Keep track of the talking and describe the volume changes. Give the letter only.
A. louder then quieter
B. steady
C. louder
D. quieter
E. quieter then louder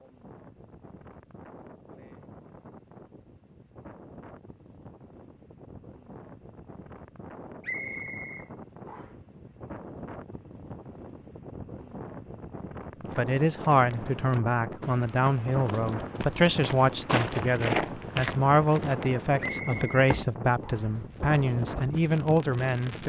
B.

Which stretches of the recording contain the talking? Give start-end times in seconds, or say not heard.
13.2-23.0.